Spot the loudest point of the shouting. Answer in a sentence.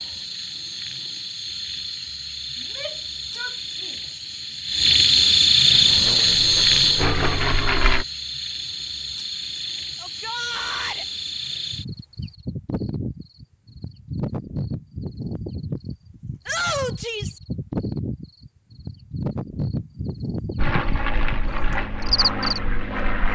The volume of the shouting peaks at 17 seconds.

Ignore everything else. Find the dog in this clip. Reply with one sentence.
The dog can't be heard in this clip.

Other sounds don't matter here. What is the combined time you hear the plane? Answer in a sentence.
The plane can be heard for 5 seconds in total.